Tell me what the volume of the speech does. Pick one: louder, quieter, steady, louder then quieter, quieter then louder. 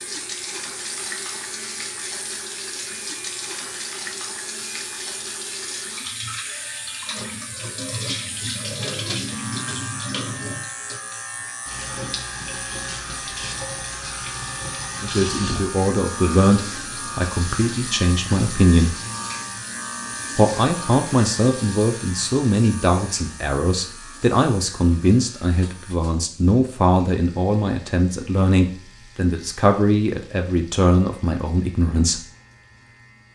steady.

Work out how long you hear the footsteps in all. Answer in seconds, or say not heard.
not heard.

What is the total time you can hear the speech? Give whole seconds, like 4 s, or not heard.
16 s.